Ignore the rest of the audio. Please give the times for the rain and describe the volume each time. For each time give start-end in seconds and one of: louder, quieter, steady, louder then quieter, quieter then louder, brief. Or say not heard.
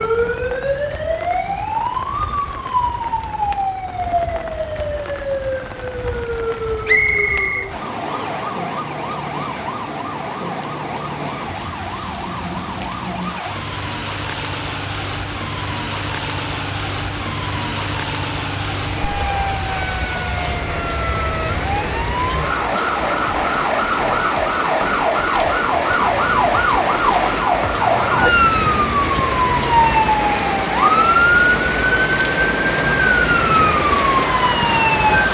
0.0-35.2 louder.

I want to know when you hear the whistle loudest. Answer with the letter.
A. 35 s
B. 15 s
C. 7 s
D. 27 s
C.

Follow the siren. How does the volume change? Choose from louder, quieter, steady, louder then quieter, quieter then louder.
quieter then louder.